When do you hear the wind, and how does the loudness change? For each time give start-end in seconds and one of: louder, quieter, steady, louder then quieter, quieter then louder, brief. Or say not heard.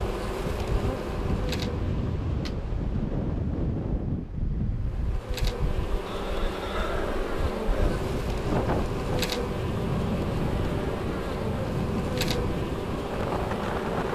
0.0-14.1 quieter then louder.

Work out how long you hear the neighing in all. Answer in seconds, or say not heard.
2 s.